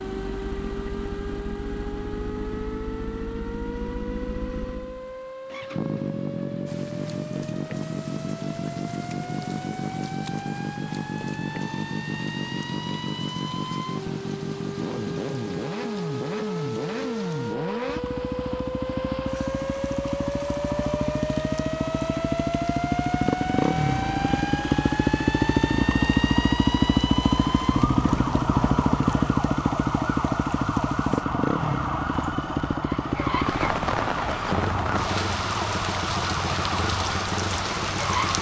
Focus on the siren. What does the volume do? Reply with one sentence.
The loudness of the siren goes up.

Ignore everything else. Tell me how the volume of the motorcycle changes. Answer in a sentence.
The volume of the motorcycle goes up, then down.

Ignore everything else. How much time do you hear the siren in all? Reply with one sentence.
The siren can be heard for 38 seconds in total.